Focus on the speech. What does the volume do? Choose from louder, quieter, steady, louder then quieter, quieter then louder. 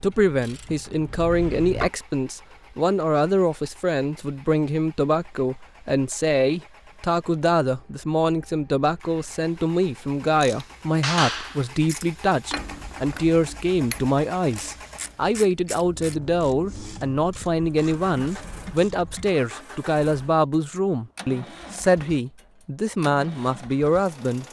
steady.